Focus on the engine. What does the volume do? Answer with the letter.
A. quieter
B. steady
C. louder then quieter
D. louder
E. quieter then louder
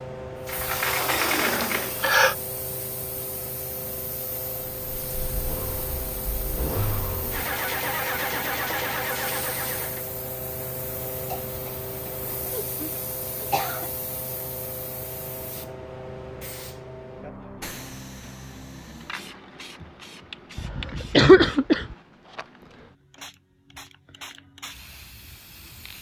D.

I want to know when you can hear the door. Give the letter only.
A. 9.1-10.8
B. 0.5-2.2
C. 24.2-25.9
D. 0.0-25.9
B.